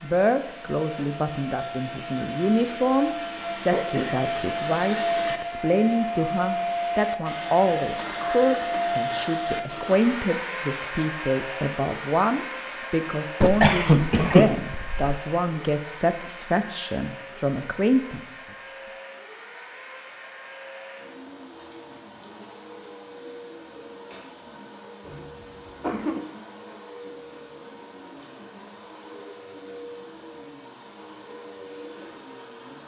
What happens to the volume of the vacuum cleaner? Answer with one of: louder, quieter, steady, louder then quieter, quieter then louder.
quieter.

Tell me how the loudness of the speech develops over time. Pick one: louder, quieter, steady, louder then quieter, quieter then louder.
steady.